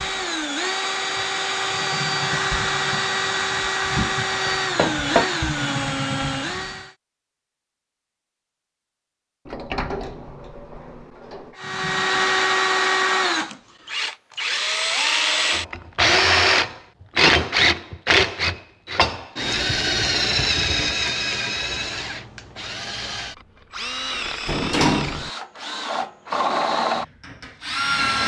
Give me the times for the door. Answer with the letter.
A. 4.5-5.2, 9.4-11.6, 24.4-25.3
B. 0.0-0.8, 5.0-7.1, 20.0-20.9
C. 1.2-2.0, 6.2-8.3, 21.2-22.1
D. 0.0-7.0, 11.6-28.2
A.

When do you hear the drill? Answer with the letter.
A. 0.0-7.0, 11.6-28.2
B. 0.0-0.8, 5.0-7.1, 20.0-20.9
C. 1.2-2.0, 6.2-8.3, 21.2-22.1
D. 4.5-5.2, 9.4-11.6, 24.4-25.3
A.